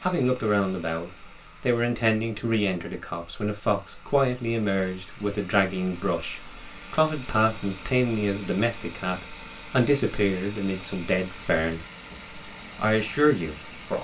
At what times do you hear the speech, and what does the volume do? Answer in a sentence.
You can hear the speech from 0.0 to 12.2 s, at a steady volume; and briefly from 12.8 to 13.9 s.